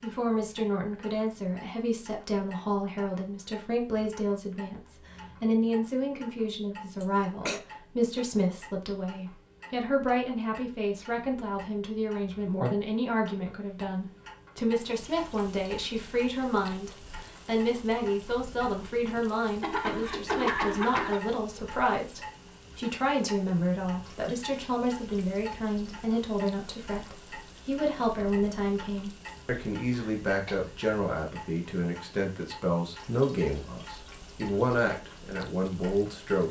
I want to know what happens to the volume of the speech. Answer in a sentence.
The volume of the speech stays about the same.